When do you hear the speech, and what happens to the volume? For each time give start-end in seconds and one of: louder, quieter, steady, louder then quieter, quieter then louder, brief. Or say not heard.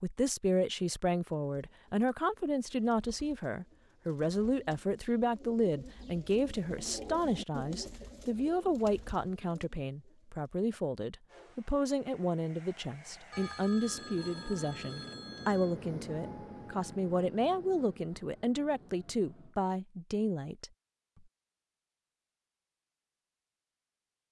0.0-20.7 steady.